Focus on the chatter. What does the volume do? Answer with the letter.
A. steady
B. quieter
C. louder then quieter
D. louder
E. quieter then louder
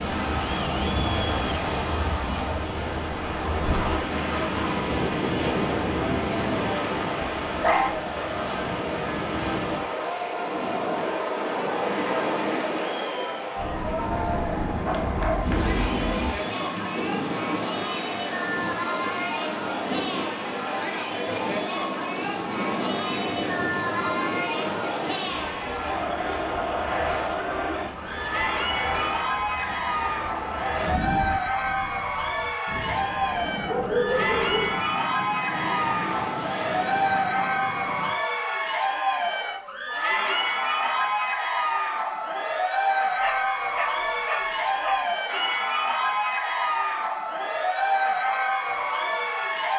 D.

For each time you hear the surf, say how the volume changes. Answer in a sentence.
You can hear the surf from 0.0 to 38.1 s, getting quieter.